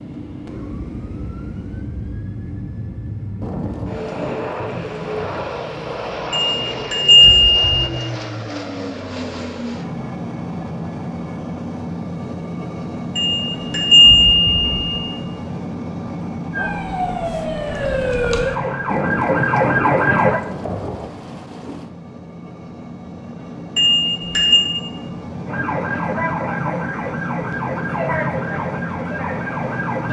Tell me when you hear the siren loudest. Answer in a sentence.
The loudest moment of the siren is at 20 seconds.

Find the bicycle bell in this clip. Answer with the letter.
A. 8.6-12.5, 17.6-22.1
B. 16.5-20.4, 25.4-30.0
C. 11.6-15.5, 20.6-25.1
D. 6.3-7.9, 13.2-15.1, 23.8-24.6
D.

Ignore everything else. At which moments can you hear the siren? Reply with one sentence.
You can hear the siren from 16.5 to 20.4 s and from 25.4 to 30.0 s.